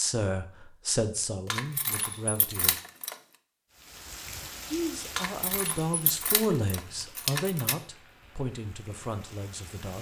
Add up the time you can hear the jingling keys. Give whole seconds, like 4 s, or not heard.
4 s.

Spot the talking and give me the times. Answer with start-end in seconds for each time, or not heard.
0.0-2.8, 4.7-9.9.